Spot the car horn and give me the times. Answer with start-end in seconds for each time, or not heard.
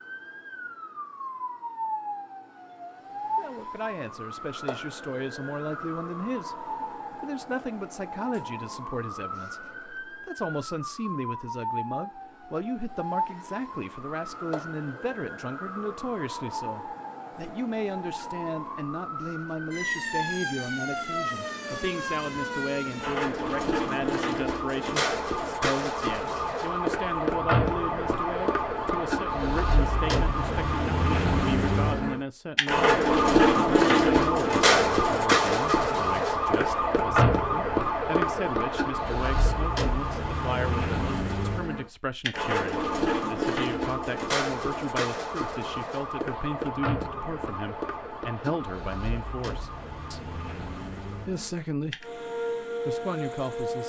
not heard.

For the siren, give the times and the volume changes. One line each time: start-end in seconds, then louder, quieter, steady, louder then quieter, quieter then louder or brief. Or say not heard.
0.0-53.8 louder then quieter.